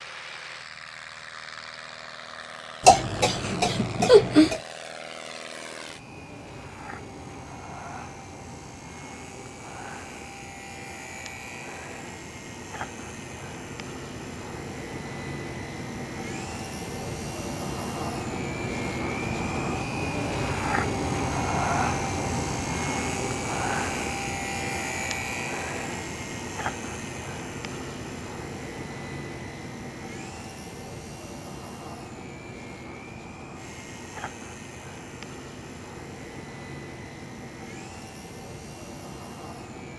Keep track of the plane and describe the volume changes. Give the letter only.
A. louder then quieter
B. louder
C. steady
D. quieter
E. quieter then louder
A.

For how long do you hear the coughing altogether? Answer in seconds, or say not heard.
2 s.